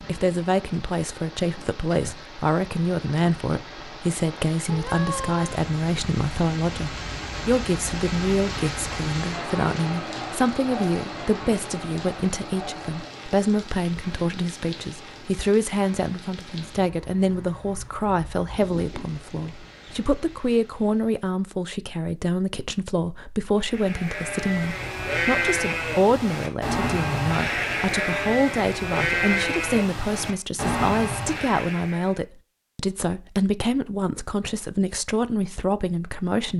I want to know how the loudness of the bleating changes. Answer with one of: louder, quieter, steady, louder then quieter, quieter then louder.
steady.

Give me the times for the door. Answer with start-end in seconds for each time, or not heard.
not heard.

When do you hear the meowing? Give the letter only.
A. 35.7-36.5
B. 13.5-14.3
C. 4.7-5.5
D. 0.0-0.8
C.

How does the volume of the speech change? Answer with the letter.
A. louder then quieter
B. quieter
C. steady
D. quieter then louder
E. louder
C.